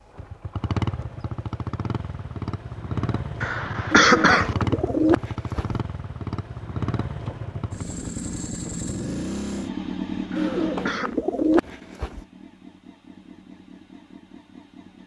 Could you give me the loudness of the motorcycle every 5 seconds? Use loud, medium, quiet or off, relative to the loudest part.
loud, loud, medium.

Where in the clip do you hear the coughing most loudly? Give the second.
4 s.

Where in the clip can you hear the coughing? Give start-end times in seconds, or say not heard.
3.4-4.5, 10.3-11.1.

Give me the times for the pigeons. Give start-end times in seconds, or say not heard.
3.9-5.8, 10.3-12.2.